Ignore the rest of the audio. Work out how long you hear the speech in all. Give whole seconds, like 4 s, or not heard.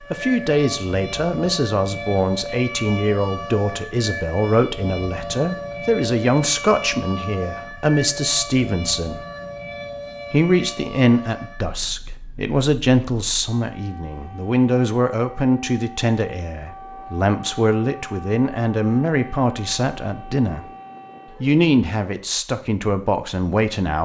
22 s.